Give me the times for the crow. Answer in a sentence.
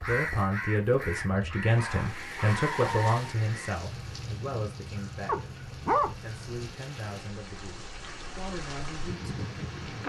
You can hear the crow from 0.0 to 6.6 s.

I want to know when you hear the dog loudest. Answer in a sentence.
The loudest moment of the dog is at 6 seconds.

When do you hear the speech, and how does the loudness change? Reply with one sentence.
The speech can be heard from 0.1 to 10.0 s, getting quieter.